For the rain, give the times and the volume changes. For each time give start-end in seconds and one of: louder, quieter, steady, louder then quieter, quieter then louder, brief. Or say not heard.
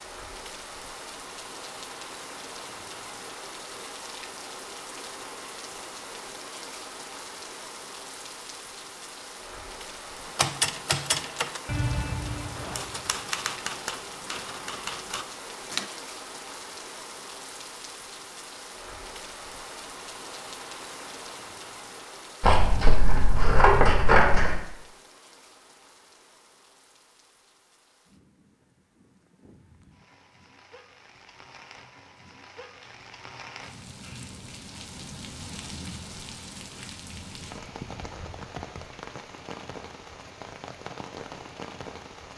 0.0-42.3 quieter then louder.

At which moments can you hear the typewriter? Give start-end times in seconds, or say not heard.
10.2-15.9.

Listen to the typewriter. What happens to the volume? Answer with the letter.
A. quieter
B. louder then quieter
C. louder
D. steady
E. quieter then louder
A.